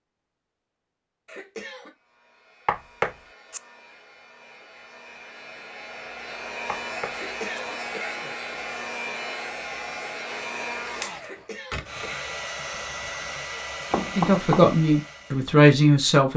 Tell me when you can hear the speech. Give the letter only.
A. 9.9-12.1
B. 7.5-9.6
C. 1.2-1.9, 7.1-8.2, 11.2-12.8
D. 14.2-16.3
D.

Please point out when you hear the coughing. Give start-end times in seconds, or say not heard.
1.2-1.9, 7.1-8.2, 11.2-12.8.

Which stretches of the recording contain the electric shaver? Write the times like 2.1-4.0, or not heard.
not heard.